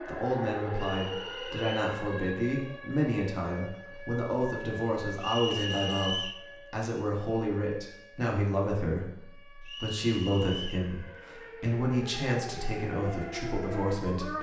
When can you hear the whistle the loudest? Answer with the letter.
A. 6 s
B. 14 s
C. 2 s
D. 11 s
A.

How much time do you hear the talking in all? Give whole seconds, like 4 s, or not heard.
14 s.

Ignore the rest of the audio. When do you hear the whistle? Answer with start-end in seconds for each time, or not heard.
0.8-1.9, 5.2-6.5, 9.7-10.9.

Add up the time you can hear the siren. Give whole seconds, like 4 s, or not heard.
14 s.